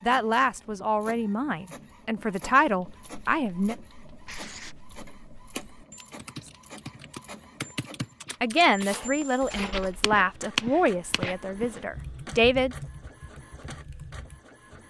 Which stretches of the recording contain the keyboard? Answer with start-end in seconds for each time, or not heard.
2.6-14.8.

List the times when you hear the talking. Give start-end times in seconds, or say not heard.
0.0-3.8, 8.4-12.8.